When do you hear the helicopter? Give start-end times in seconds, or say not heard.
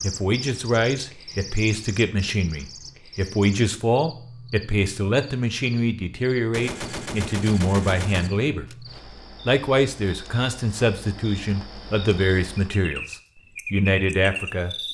not heard.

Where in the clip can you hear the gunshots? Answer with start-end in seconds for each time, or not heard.
6.5-9.0.